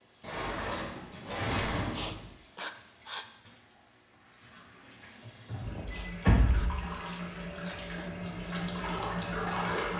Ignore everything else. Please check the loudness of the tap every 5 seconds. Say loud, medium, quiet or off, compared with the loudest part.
quiet, loud.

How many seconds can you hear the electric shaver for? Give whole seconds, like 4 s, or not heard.
not heard.